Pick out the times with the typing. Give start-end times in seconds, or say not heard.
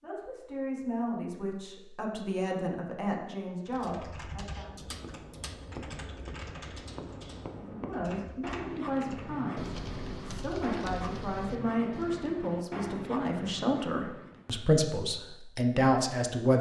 3.6-12.2.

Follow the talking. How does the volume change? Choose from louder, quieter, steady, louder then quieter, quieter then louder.
louder.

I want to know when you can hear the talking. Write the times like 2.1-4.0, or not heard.
0.0-4.7, 7.5-16.5.